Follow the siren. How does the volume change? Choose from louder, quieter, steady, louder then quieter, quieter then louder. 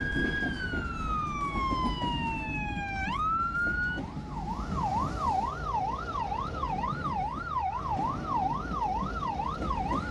steady.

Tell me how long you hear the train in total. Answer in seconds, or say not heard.
10 s.